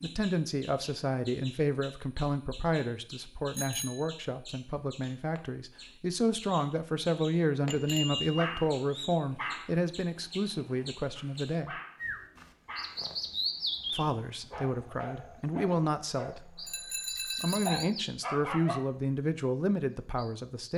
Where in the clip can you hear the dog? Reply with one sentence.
You can hear the dog from 8.3 to 16.7 s and from 17.6 to 18.8 s.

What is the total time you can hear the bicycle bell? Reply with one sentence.
You can hear the bicycle bell for 3 seconds altogether.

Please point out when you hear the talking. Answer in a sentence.
You can hear the talking from 0.0 to 11.8 s and from 13.9 to 20.7 s.